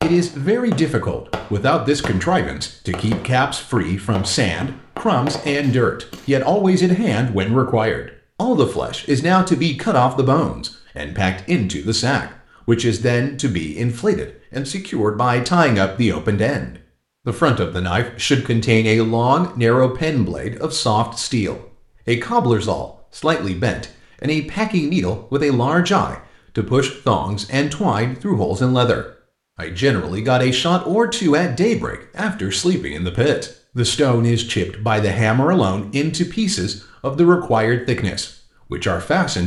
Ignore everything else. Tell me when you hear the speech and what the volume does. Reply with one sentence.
You can hear the speech from 0.0 to 39.4 s, at a steady volume.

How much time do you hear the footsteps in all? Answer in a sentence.
The footsteps can't be heard in this clip.